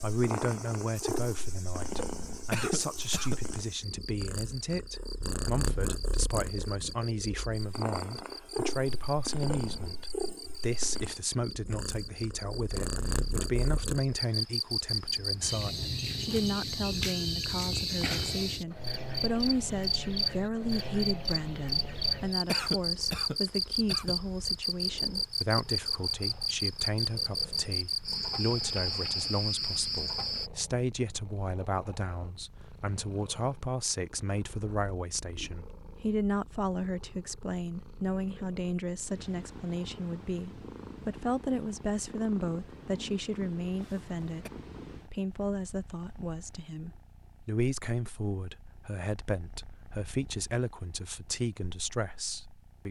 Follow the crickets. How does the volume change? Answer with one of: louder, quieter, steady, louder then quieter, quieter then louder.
louder.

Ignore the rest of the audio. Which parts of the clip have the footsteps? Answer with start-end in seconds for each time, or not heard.
not heard.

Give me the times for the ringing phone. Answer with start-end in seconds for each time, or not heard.
not heard.